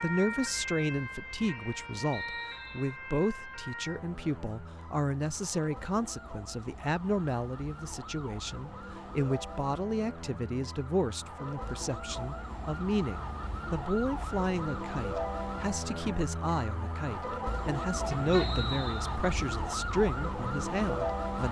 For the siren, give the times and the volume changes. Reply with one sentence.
You can hear the siren from 0.0 to 21.4 s, getting quieter then louder.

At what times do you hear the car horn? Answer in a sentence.
The car horn can be heard from 18.1 to 18.9 s.